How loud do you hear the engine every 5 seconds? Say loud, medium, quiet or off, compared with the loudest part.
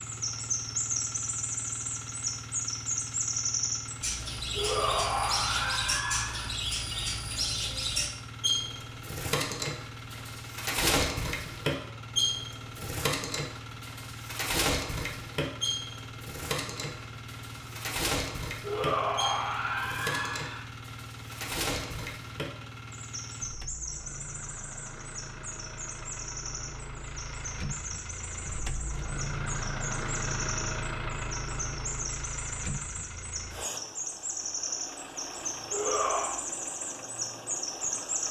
medium, medium, medium, medium, medium, loud, loud, medium.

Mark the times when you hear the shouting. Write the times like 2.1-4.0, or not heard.
4.5-6.5, 18.6-20.6, 35.7-36.4.